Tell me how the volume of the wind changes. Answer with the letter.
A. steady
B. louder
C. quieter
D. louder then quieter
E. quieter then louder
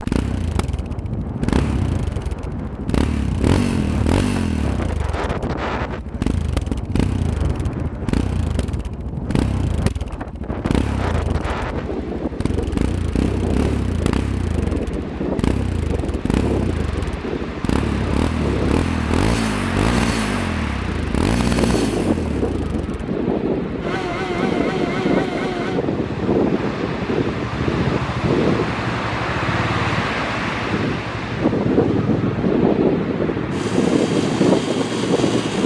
B.